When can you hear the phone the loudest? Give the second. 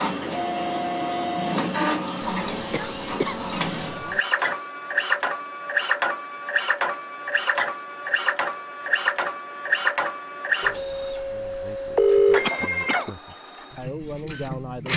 12 s.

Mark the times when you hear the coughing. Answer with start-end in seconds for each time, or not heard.
2.2-4.2, 12.4-13.2.